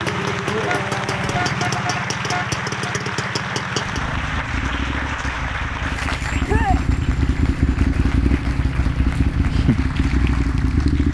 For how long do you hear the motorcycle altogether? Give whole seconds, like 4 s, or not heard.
11 s.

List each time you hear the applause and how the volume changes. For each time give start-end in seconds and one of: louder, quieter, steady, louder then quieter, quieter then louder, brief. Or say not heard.
0.0-11.0 quieter.